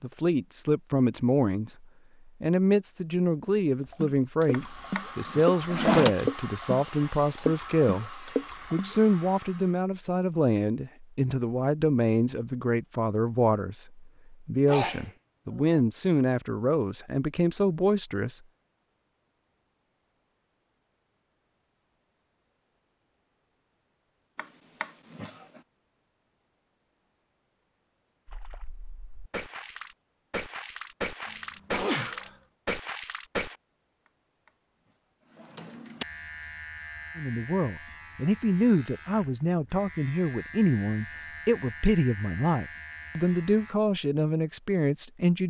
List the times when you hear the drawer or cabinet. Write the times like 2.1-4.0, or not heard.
4.5-6.2, 24.4-25.6, 35.4-36.0.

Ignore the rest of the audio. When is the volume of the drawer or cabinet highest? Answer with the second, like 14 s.
6 s.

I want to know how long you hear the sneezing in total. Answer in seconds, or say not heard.
2 s.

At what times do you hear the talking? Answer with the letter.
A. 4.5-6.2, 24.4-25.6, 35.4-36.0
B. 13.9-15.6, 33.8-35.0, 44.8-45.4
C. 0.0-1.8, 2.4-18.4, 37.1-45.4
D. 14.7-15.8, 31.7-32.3
C.